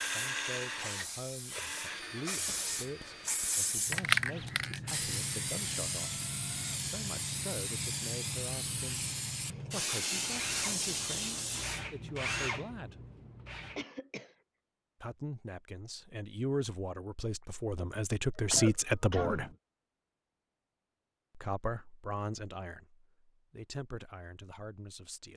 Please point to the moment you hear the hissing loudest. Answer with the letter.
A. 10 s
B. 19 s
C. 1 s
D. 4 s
D.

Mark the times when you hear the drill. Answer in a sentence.
You can hear the drill from 0.0 to 6.8 s and from 10.2 to 13.8 s.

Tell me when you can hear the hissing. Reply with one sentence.
You can hear the hissing from 0.0 to 11.8 s.